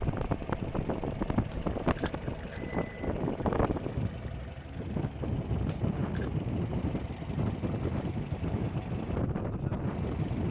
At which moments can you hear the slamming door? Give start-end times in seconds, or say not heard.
not heard.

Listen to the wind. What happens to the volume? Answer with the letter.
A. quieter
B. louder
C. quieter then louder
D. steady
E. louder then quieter
D.